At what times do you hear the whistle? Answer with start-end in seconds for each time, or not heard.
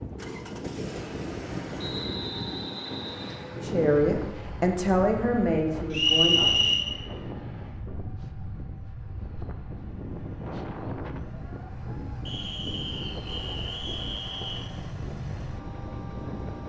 1.8-3.4, 5.9-6.8, 12.2-14.7.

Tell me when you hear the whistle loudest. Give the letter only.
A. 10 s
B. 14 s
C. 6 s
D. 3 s
C.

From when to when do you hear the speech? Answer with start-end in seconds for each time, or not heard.
3.6-6.5.